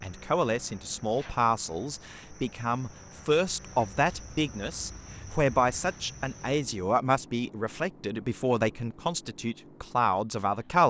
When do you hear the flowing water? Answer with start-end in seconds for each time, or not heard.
not heard.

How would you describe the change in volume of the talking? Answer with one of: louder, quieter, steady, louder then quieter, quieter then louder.
steady.